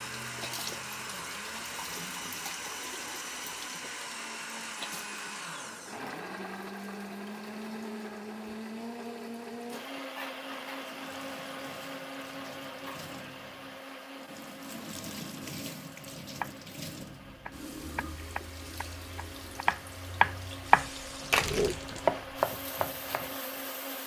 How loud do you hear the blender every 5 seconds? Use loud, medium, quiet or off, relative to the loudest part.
loud, loud, loud, medium, loud.